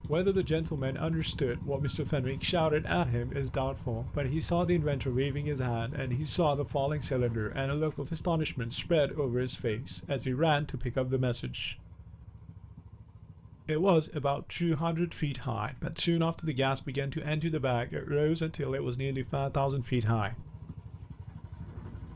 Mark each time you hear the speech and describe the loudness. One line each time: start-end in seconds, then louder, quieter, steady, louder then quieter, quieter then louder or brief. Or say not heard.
0.1-11.8 steady
13.7-20.4 steady.